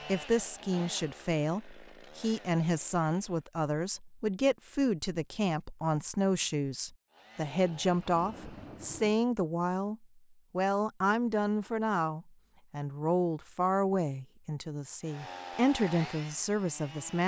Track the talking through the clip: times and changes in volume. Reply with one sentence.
The talking can be heard from 0.1 to 17.2 s, at a steady volume.